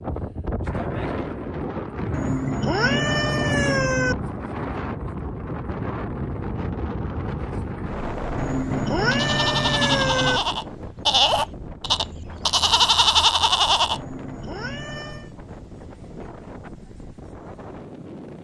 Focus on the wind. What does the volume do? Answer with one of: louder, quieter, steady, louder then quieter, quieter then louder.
quieter.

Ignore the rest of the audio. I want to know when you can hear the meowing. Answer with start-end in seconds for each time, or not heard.
2.1-4.2, 8.3-10.4, 13.9-15.3.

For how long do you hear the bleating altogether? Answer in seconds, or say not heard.
5 s.